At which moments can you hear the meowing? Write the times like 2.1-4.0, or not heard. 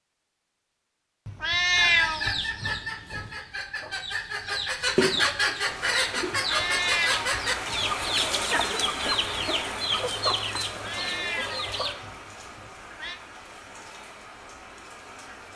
1.2-3.3, 6.3-7.8, 10.7-13.2.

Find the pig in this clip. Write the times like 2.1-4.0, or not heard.
not heard.